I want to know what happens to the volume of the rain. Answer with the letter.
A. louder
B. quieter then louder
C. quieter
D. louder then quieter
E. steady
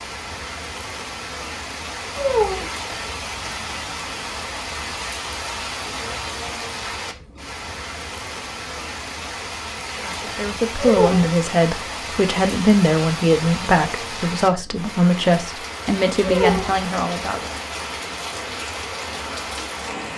E.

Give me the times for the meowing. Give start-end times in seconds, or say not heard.
2.1-2.6, 10.8-11.3, 16.2-16.8.